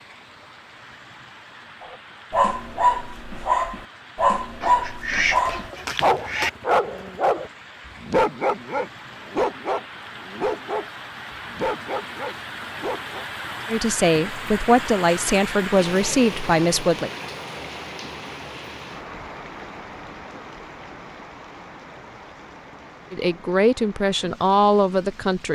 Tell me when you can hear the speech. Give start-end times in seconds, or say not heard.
13.7-17.1, 23.1-25.5.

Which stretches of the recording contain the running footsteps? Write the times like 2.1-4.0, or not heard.
not heard.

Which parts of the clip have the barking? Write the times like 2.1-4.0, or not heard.
1.8-10.8, 11.4-13.2.